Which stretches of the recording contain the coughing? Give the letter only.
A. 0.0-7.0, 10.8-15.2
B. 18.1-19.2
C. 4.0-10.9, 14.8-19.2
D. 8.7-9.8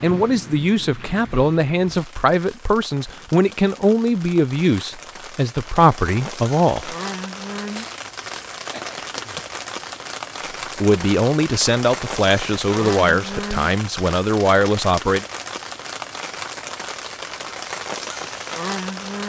D.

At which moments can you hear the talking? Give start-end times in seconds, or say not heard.
0.0-7.0, 10.8-15.2.